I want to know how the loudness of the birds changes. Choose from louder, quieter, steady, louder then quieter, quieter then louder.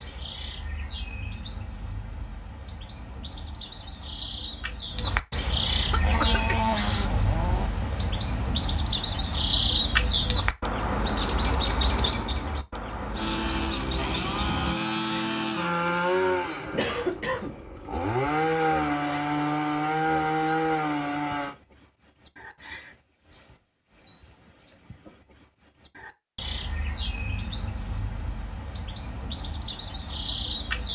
louder then quieter.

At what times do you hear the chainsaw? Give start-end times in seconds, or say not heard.
6.0-8.0, 13.1-21.6.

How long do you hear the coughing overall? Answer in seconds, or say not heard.
2 s.